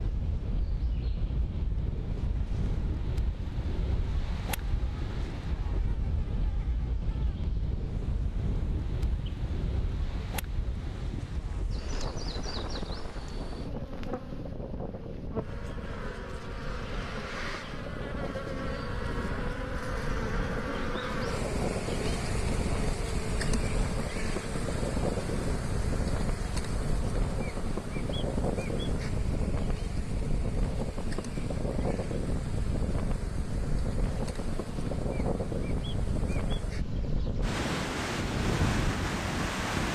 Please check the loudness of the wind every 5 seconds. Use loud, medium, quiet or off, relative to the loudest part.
medium, medium, medium, medium, loud, loud, loud, loud.